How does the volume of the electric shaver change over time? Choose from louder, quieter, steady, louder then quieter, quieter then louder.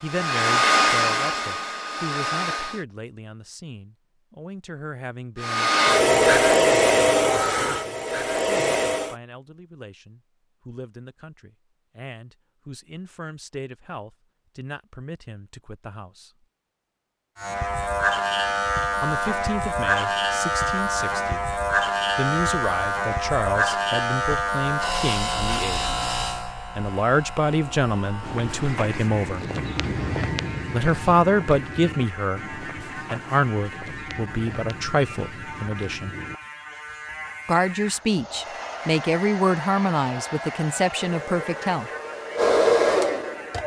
quieter.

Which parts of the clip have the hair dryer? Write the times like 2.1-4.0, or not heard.
0.1-2.8, 5.4-9.2, 38.0-43.6.